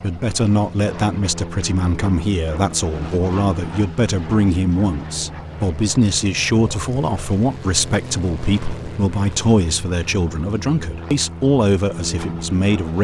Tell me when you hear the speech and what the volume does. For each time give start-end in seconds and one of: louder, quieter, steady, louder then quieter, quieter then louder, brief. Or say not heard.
0.0-13.0 steady.